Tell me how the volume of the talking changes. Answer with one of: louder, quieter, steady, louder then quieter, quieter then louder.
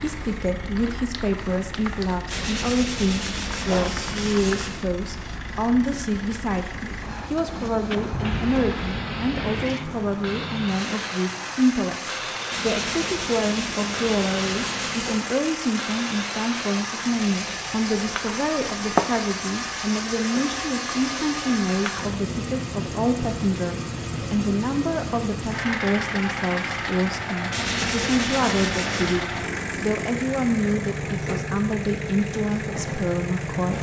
steady.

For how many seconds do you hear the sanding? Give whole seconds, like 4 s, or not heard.
7 s.